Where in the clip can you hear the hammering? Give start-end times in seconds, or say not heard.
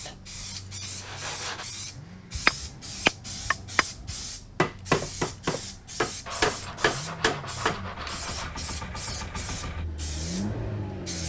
2.3-8.2.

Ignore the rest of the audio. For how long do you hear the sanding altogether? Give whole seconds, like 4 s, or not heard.
4 s.